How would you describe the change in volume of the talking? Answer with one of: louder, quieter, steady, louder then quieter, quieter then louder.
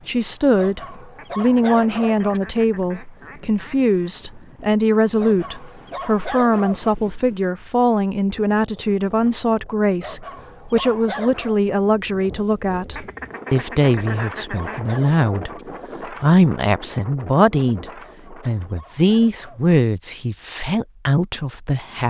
steady.